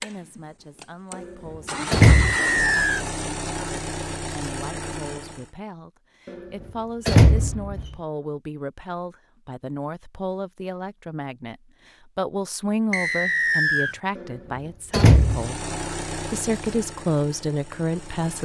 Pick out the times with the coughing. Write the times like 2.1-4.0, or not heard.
not heard.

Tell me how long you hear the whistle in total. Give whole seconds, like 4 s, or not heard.
2 s.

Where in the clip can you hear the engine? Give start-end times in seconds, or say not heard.
0.0-5.5, 15.1-18.4.